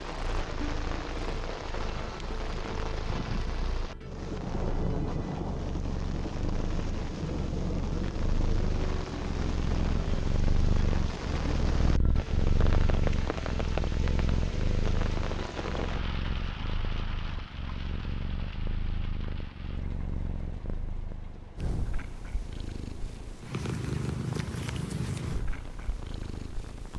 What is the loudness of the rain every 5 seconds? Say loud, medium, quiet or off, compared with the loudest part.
loud, loud, loud, medium, quiet, quiet.